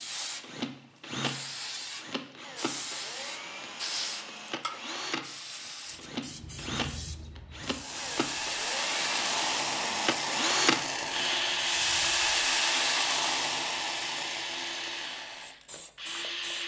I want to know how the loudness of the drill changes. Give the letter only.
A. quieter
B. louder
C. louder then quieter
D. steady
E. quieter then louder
C.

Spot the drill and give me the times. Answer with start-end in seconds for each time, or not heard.
0.1-16.6.